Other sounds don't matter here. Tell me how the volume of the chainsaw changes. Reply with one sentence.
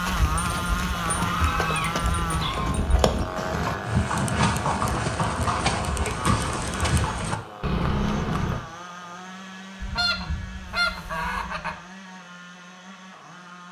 The volume of the chainsaw goes down.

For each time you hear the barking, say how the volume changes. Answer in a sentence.
The barking can't be heard in this clip.